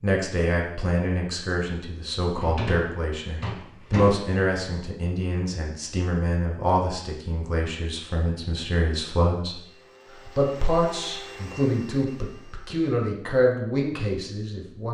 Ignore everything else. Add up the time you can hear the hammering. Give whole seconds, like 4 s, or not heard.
not heard.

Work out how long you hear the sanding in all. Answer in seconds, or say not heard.
not heard.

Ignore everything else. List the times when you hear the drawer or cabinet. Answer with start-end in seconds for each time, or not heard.
2.4-4.3.